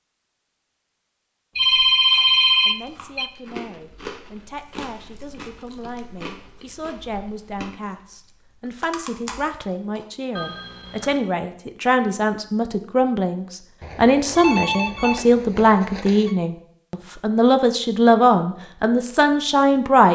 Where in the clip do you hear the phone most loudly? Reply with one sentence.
The volume of the phone peaks at 2 seconds.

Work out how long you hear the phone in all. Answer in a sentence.
The phone can be heard for 5 seconds in total.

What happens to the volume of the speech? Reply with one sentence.
The loudness of the speech goes up.